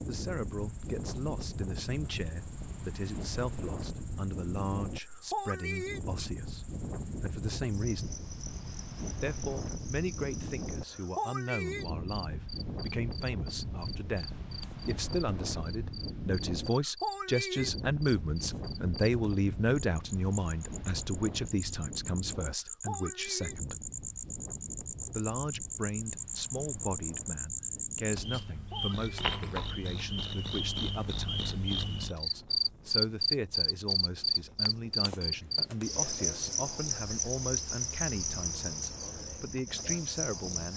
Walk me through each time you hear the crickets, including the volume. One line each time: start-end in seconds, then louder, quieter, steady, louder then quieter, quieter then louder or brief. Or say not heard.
0.1-40.7 louder.